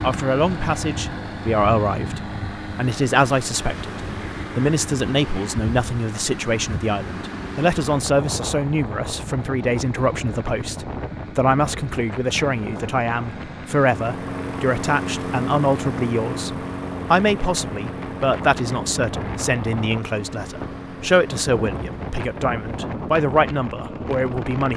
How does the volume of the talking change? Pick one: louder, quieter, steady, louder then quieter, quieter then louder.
steady.